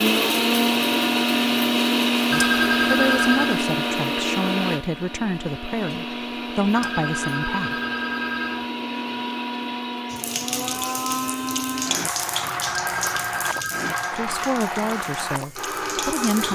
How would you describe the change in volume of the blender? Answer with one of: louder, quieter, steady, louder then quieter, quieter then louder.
quieter.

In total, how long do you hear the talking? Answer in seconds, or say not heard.
8 s.